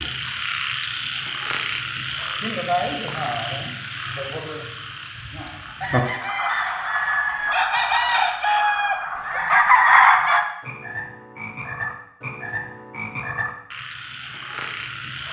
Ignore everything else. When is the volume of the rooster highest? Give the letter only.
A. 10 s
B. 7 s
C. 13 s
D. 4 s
A.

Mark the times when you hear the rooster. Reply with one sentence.
The rooster can be heard from 5.8 to 10.4 s.